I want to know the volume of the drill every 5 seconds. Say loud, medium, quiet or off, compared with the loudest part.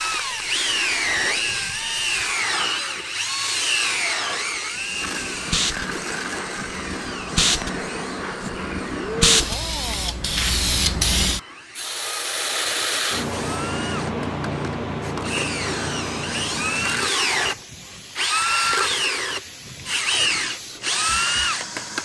loud, medium, quiet, loud, loud.